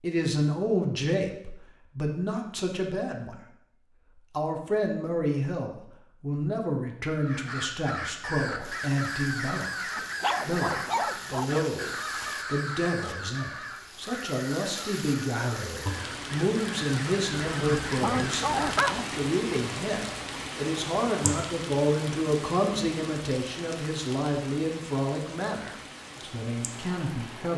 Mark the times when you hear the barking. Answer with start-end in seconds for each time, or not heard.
9.9-11.7, 17.5-18.9.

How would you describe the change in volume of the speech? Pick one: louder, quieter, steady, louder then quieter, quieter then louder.
steady.